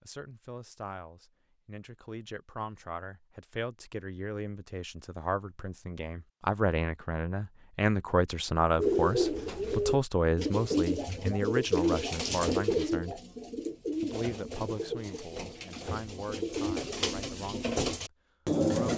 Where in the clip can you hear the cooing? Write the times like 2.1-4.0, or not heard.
8.8-18.9.